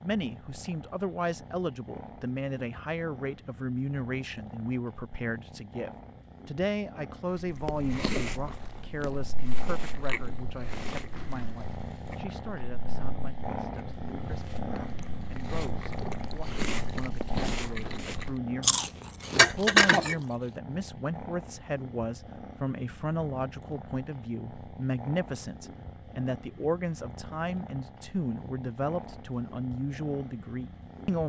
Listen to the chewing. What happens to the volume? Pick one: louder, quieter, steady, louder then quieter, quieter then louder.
quieter then louder.